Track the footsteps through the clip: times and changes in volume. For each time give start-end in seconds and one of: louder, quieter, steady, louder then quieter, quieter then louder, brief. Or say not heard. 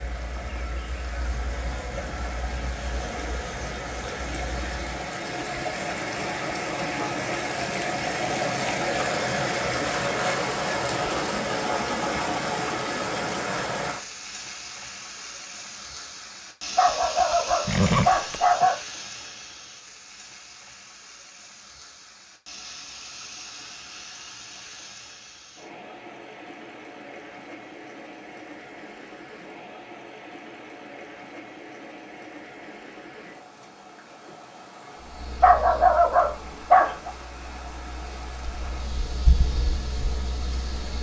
not heard.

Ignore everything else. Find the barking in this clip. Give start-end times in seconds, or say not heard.
16.8-18.8, 35.4-37.1.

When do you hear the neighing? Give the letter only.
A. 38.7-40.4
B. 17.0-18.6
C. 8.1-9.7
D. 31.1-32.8
B.